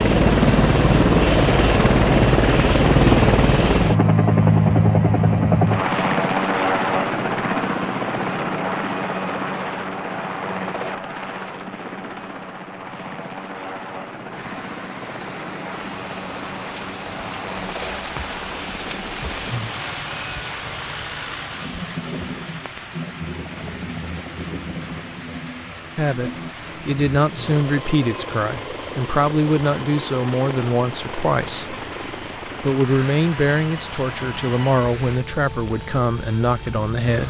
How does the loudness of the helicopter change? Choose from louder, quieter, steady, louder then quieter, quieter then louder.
quieter.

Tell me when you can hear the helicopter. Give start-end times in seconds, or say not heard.
0.0-37.2.